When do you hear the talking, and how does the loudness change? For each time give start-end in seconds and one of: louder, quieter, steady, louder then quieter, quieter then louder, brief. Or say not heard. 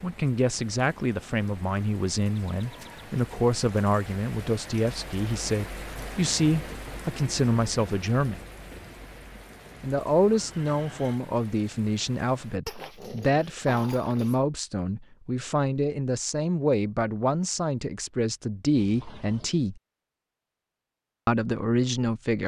0.0-8.4 steady
9.8-19.8 steady
21.2-22.4 brief.